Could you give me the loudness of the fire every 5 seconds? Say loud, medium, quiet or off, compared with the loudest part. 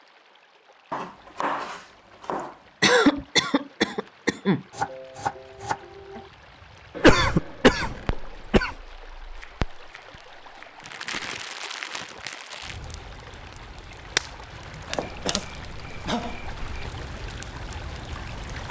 off, medium, loud, medium.